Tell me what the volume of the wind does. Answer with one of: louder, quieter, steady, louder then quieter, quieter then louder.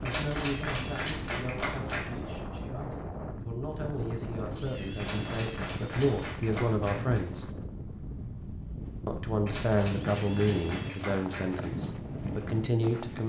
steady.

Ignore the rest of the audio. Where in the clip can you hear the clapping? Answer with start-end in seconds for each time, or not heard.
0.1-2.0, 5.0-7.2, 9.4-11.7.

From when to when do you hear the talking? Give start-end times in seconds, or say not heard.
0.0-7.5, 9.1-13.2.